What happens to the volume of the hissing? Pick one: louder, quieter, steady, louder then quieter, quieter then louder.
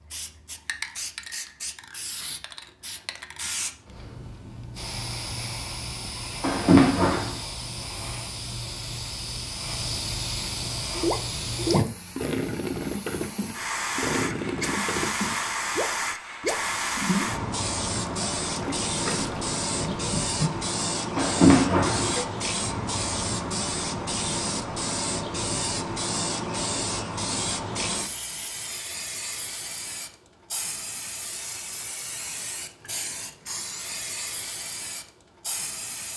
louder then quieter.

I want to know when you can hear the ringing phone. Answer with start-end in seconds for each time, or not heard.
6.4-7.3, 21.1-22.2.